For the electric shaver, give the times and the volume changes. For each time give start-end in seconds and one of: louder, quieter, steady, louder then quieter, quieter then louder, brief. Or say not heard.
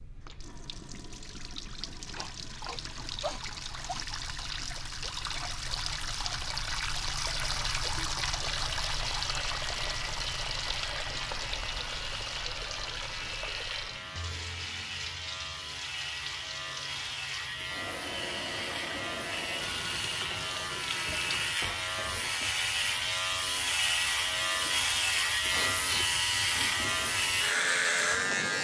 8.8-28.6 louder.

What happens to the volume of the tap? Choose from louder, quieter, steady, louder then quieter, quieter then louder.
louder then quieter.